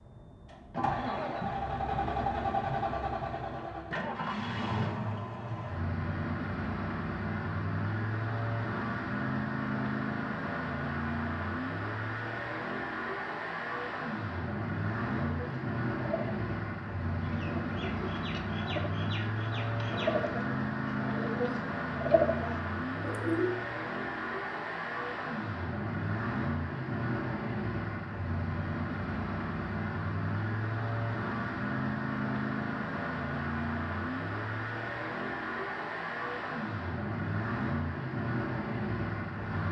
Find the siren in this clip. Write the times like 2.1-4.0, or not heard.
not heard.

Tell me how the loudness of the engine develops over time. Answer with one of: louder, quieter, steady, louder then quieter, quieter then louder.
steady.